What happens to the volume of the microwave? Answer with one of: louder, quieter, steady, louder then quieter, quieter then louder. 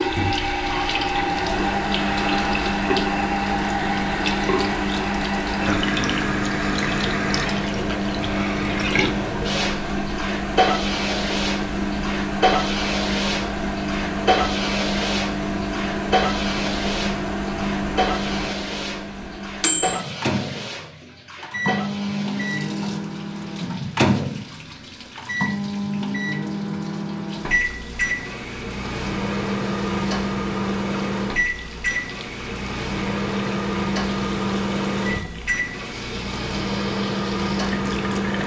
steady.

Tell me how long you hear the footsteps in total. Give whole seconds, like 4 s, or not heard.
not heard.